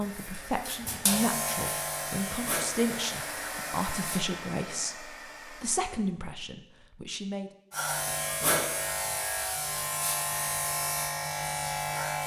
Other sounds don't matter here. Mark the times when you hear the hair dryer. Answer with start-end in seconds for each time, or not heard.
0.0-6.2.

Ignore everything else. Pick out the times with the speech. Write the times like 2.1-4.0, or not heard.
0.0-7.5.